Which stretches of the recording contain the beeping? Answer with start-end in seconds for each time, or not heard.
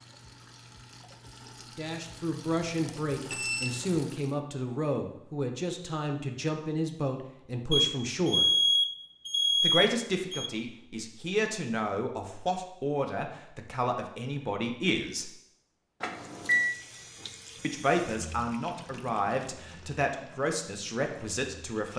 2.9-3.8, 7.7-10.5, 16.0-16.8.